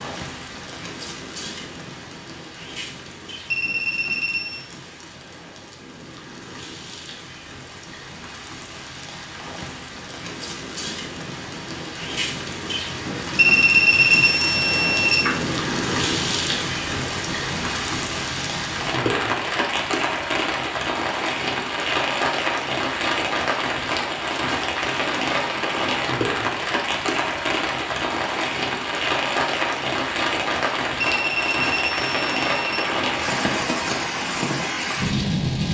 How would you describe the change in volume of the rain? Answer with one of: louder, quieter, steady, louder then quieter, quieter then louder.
louder.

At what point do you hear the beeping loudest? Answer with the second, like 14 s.
14 s.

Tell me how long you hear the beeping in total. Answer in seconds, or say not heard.
5 s.